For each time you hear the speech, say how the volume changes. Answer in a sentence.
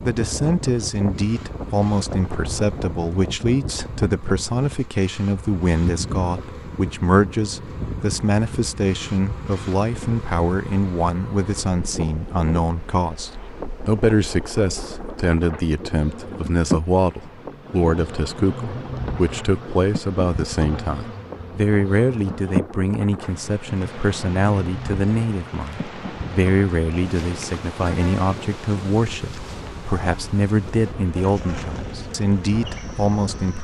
The speech can be heard from 0.0 to 33.5 s, at a steady volume.